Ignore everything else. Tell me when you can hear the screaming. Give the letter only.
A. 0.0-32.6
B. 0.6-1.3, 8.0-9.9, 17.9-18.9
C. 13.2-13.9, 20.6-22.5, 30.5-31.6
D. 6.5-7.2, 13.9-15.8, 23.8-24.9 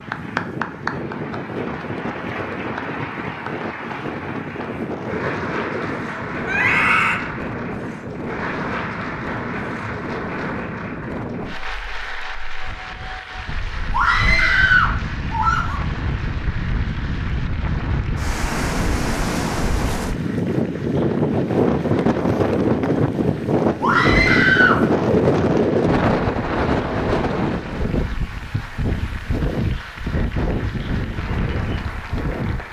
D.